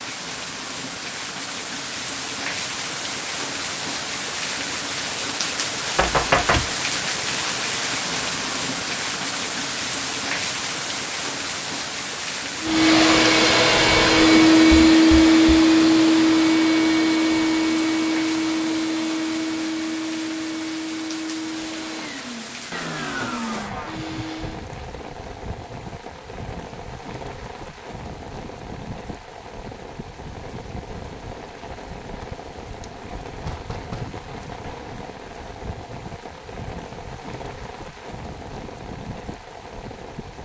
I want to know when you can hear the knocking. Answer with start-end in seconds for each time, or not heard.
6.0-6.7, 14.7-15.7, 33.4-34.2.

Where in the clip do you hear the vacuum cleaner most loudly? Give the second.
15 s.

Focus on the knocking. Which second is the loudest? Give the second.
6 s.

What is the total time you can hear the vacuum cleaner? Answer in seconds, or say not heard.
12 s.